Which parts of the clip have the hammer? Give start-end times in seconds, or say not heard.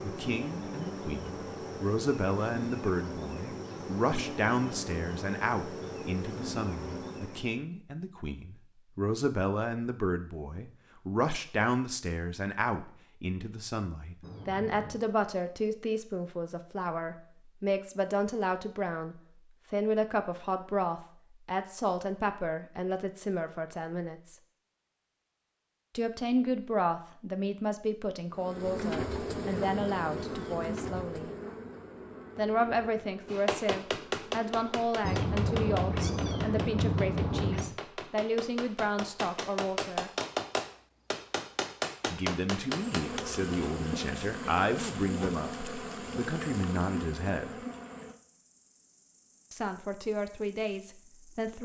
33.2-43.2.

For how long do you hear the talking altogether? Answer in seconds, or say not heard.
45 s.